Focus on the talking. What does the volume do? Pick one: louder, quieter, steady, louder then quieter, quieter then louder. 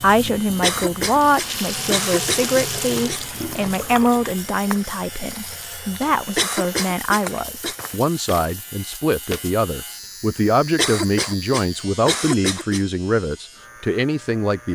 steady.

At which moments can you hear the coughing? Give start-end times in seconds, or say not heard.
0.6-3.2, 6.3-7.8, 10.8-12.8.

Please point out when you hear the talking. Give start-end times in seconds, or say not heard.
0.0-14.6.